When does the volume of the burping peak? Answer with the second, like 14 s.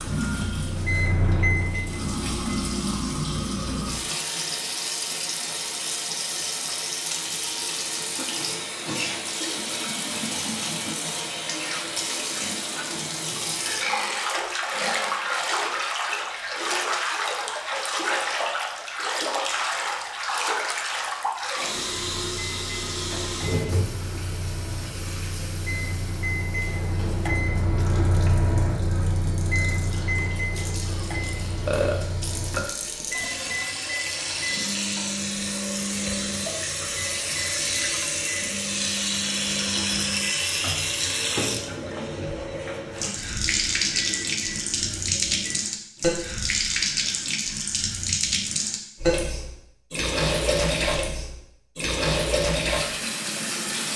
32 s.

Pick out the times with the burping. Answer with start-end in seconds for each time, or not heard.
13.8-15.2, 31.6-33.6.